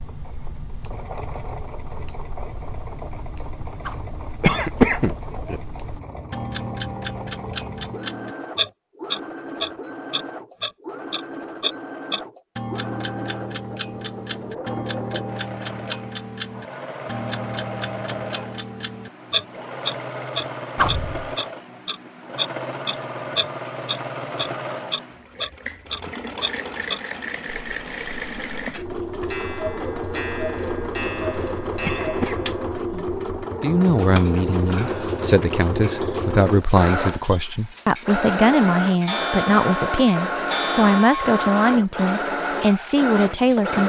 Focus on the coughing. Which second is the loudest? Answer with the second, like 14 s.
5 s.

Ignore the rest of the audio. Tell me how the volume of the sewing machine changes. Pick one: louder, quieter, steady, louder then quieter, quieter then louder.
louder.